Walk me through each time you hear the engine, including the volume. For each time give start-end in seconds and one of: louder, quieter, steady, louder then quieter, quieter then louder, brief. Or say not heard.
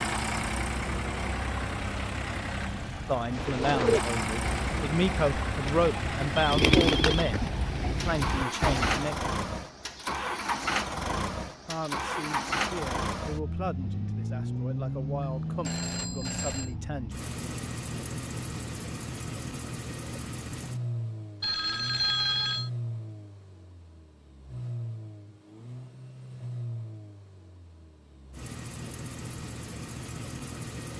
0.0-30.9 quieter.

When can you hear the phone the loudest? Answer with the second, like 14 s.
22 s.